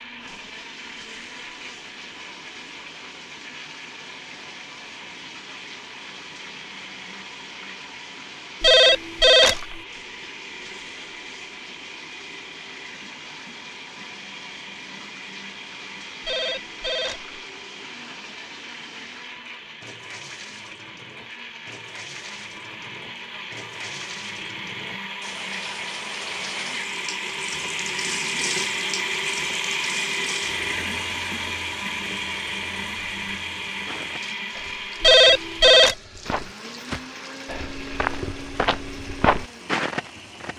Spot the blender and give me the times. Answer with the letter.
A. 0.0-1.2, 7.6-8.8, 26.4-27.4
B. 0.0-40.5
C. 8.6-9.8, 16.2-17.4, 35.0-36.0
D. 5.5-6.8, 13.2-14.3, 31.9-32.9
B.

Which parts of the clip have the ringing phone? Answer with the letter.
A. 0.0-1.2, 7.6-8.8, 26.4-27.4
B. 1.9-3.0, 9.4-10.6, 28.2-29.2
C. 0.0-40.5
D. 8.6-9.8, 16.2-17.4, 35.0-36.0
D.